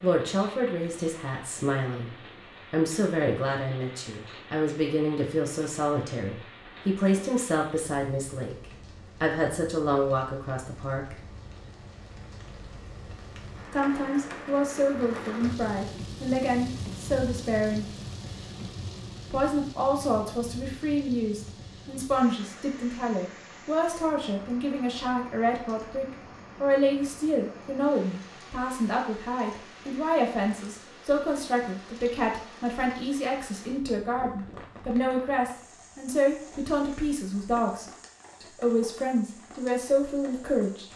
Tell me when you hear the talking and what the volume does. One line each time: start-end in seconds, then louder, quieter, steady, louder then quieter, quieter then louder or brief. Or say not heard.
0.0-11.2 steady
13.7-17.9 steady
19.3-40.9 steady.